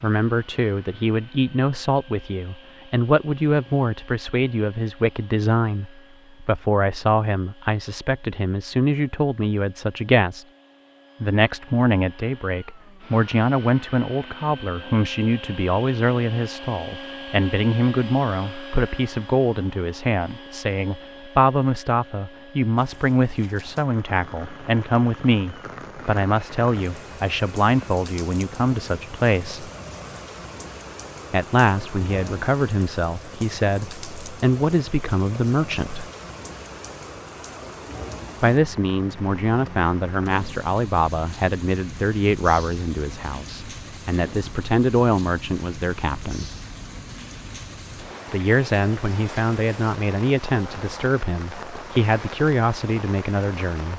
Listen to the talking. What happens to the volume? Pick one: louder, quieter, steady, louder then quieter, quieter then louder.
steady.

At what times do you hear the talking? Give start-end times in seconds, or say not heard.
0.0-10.4, 11.2-29.7, 31.3-36.0, 38.4-46.5, 48.3-53.9.